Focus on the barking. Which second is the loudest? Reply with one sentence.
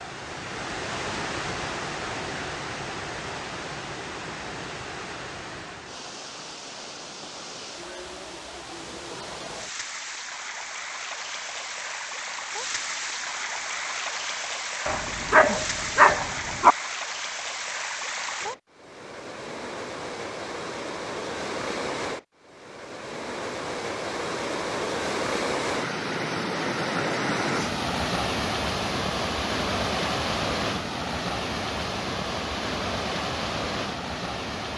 The volume of the barking peaks at 16 seconds.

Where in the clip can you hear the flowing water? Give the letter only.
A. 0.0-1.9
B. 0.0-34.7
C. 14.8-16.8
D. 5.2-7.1
B.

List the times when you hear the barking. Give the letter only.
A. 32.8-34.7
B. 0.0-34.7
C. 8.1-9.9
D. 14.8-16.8
D.